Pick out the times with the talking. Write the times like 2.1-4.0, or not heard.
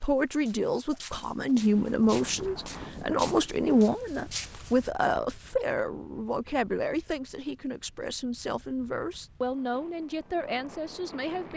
0.0-11.5.